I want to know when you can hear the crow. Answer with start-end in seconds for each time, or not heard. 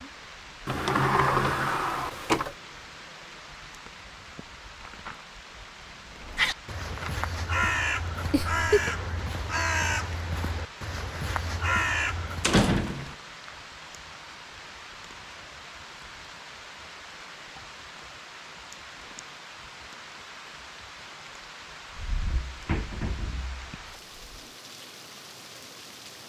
6.1-12.6.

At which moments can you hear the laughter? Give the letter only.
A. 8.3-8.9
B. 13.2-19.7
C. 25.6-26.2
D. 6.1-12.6
A.